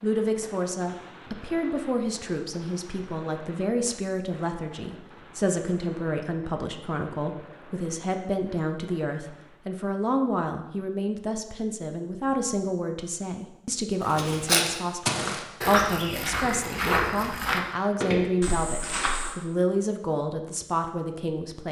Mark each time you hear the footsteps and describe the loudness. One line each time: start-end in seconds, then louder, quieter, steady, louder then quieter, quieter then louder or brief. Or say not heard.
14.0-19.4 quieter.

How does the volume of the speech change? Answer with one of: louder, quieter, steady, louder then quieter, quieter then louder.
steady.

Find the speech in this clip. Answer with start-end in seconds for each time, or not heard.
0.0-21.6.